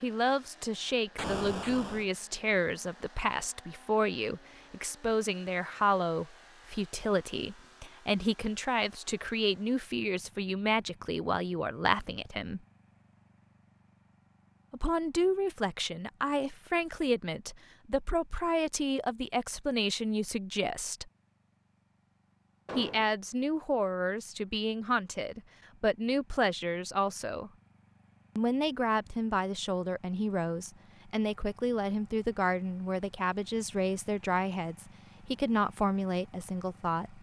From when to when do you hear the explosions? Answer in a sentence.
The explosions can be heard from 1.1 to 2.0 s and from 22.6 to 23.1 s.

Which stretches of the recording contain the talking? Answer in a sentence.
The talking can be heard from 0.0 to 12.6 s, from 14.7 to 21.1 s, from 22.8 to 27.5 s and from 28.4 to 37.1 s.